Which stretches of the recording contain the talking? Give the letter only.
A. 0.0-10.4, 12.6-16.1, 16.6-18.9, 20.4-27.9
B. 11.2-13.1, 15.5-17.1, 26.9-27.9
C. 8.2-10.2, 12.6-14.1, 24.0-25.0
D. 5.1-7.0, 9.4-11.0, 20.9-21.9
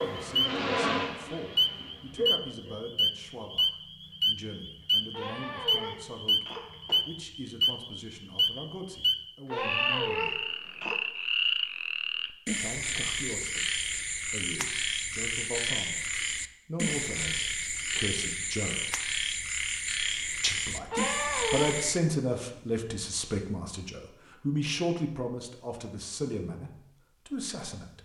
A.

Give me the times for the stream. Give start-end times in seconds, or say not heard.
not heard.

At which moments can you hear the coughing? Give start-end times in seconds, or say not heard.
5.1-7.0, 9.4-11.0, 20.9-21.9.